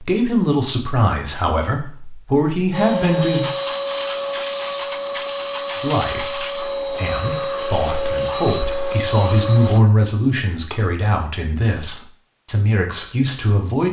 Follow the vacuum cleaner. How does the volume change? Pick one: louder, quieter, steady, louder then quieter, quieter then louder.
steady.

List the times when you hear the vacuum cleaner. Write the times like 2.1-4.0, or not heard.
2.7-9.8.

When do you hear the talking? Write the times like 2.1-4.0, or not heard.
0.0-3.5, 5.8-13.8.